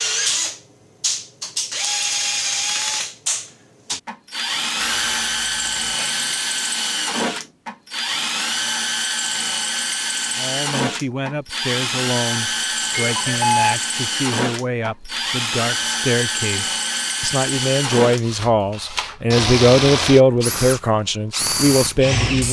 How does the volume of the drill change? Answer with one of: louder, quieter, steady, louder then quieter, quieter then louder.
steady.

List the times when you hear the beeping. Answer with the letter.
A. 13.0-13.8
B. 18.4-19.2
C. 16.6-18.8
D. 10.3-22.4
A.